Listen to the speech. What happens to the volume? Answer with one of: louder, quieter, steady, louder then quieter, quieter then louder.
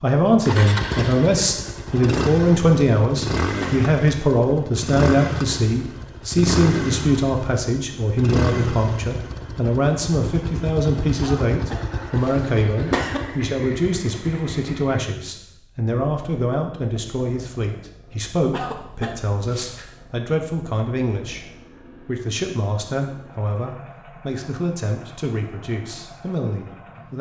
quieter.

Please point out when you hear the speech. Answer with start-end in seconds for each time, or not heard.
0.0-27.1.